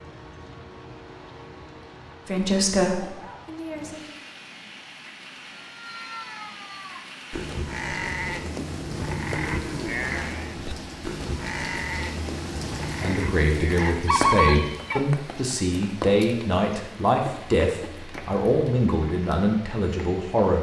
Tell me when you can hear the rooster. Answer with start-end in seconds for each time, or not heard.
13.8-15.0.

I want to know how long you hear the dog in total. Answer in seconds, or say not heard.
not heard.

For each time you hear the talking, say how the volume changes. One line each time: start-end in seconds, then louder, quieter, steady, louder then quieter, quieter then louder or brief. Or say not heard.
2.2-4.2 brief
13.0-20.5 steady.